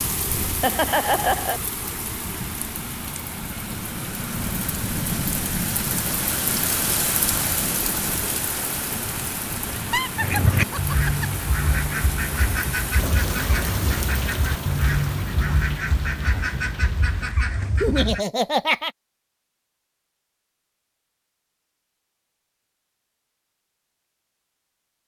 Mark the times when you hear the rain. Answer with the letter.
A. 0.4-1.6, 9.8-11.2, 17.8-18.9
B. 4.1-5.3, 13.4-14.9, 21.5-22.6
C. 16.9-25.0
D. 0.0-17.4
D.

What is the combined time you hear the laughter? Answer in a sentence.
You can hear the laughter for 4 seconds altogether.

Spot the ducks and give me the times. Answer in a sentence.
The ducks can be heard from 10.2 to 18.2 s.